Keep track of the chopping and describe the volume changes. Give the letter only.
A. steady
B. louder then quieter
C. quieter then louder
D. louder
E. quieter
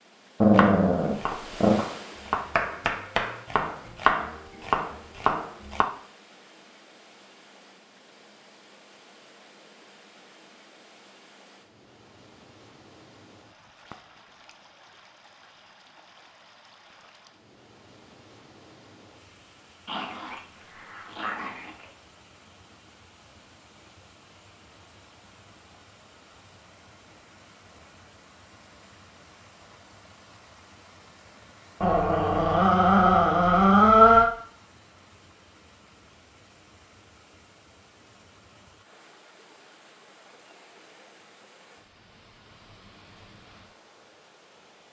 D.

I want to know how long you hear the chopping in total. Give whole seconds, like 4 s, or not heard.
5 s.